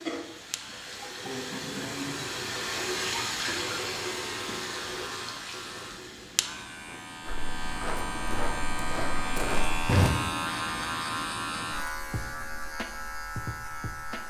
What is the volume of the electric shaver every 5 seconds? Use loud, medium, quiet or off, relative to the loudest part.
medium, loud, loud.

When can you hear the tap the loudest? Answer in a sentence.
The loudest moment of the tap is at 3 seconds.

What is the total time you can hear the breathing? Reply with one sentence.
You can't hear the breathing here.